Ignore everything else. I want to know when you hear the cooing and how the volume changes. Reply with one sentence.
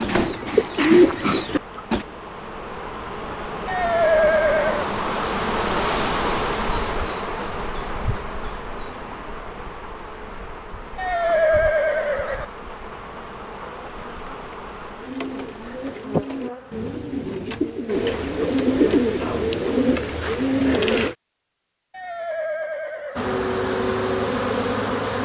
You can hear the cooing briefly from 0.0 to 2.0 s; and from 14.9 to 21.1 s, getting louder.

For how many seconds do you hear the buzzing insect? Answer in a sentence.
You can hear the buzzing insect for 19 seconds altogether.